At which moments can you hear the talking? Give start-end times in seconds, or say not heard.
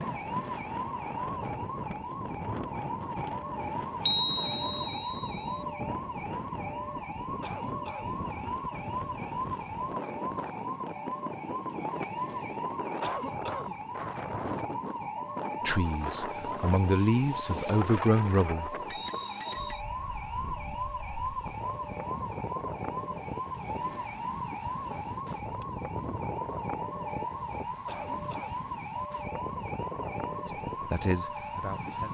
15.7-18.8, 30.9-32.1.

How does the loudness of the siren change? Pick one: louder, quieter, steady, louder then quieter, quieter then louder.
steady.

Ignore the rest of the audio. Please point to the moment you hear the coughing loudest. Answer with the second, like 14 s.
13 s.